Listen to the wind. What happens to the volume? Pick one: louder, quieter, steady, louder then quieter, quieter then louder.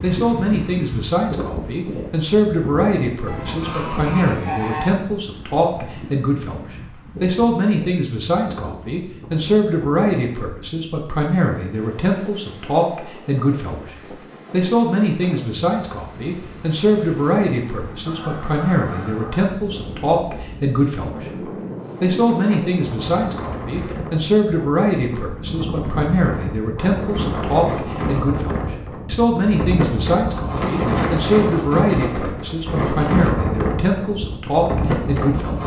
quieter then louder.